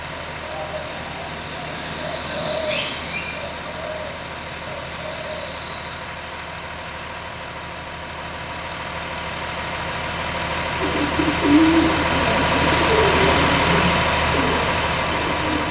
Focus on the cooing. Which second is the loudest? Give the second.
12 s.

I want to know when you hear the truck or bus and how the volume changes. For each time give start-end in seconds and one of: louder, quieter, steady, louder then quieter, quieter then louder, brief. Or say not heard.
0.0-15.6 louder.